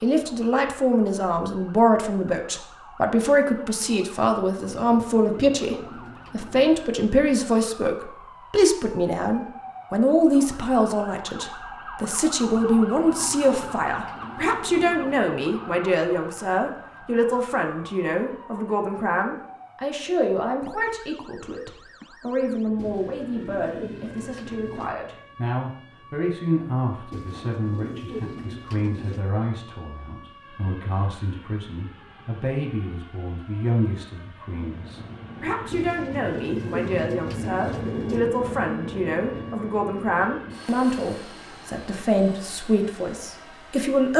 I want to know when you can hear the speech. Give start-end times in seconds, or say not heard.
0.0-44.1.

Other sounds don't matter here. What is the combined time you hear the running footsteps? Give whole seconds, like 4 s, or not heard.
not heard.